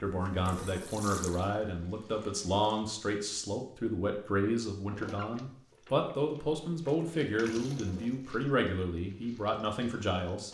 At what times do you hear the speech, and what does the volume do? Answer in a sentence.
The speech can be heard from 0.0 to 10.4 s, at a steady volume.